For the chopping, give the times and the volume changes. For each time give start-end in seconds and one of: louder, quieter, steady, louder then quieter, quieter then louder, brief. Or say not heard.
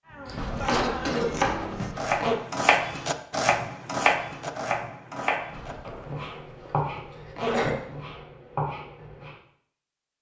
0.1-9.3 quieter.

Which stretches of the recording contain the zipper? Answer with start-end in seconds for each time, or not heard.
0.3-2.4, 5.5-8.2.